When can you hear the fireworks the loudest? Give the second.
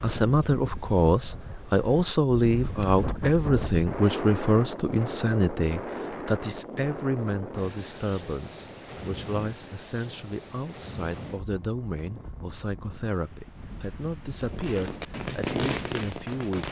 16 s.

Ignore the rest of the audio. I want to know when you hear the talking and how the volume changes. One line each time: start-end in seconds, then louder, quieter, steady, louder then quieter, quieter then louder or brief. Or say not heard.
0.0-16.6 quieter.